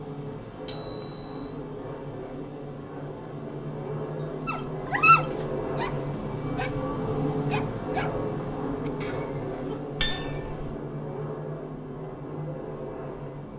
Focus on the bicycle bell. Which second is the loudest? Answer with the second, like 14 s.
10 s.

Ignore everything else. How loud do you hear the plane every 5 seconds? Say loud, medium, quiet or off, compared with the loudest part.
medium, loud, medium.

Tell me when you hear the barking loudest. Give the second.
5 s.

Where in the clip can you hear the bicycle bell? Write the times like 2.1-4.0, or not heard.
0.7-1.4, 10.0-10.7.